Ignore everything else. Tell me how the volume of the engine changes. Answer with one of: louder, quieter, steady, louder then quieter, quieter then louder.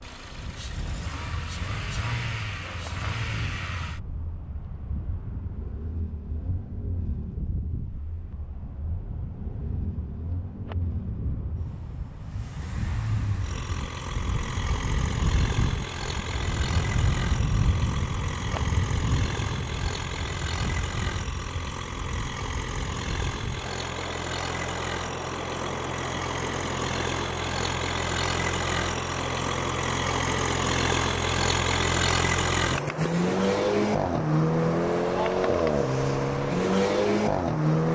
louder.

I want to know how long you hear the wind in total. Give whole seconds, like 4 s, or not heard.
38 s.